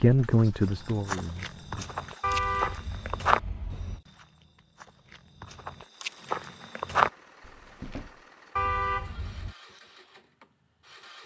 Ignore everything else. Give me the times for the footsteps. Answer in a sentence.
You can hear the footsteps from 0.7 to 8.1 s.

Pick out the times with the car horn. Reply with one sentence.
The car horn can be heard from 2.2 to 4.0 s and from 8.6 to 9.6 s.